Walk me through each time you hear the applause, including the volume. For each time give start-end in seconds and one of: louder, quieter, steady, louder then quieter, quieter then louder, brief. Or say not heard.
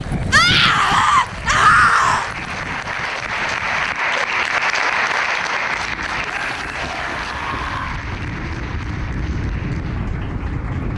0.0-10.9 louder then quieter.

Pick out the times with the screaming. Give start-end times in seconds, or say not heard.
0.3-2.3, 6.2-8.0.